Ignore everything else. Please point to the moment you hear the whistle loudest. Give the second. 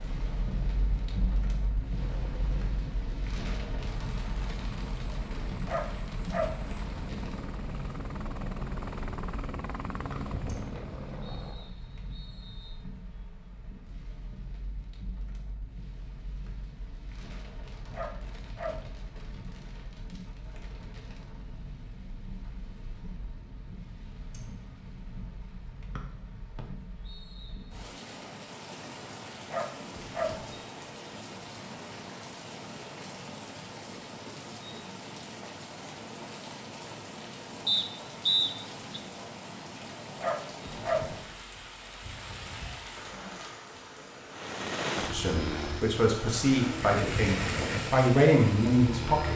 38 s.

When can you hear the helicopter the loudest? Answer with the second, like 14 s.
45 s.